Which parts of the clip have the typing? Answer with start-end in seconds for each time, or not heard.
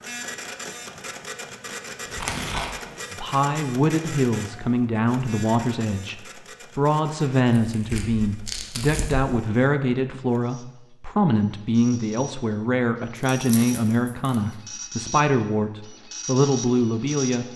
not heard.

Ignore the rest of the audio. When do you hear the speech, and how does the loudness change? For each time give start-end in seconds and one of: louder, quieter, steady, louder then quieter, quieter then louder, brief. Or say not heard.
3.1-17.5 steady.